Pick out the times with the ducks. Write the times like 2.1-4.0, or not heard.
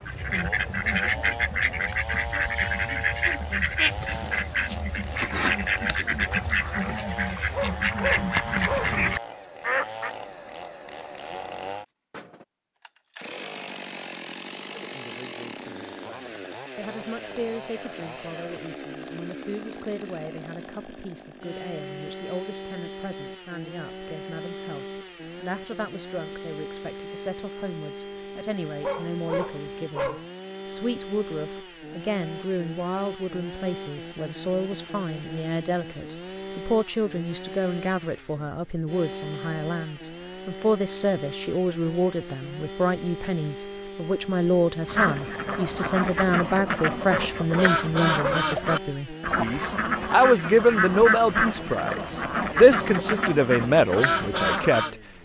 0.0-10.1, 44.9-54.9.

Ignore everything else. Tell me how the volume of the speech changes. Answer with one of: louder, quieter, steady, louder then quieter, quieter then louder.
louder.